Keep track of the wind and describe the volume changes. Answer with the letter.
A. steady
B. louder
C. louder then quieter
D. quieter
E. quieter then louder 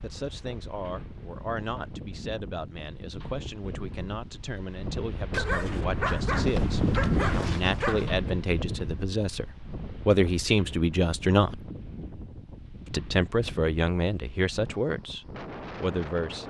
C.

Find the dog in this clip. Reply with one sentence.
You can hear the dog from 5.3 to 8.1 s.